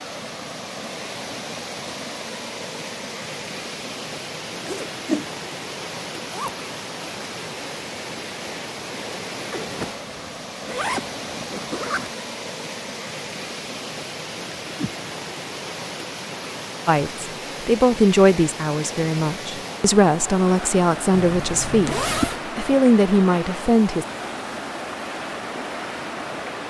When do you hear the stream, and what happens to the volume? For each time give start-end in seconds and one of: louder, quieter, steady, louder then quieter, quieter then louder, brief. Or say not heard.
0.0-26.6 steady.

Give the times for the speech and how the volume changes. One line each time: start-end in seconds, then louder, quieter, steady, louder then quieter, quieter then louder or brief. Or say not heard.
16.9-24.1 quieter then louder.